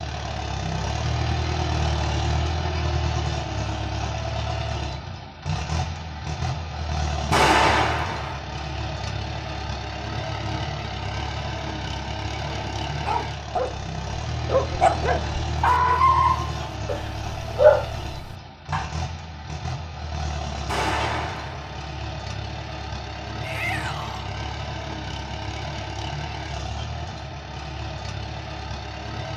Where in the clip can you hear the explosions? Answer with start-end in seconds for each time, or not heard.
7.3-8.4, 20.6-21.8.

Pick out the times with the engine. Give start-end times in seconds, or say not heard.
0.0-29.3.